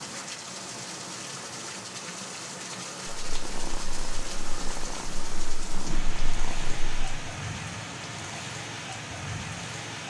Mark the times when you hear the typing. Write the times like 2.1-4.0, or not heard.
not heard.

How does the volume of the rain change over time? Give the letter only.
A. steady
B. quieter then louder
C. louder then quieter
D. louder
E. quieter
A.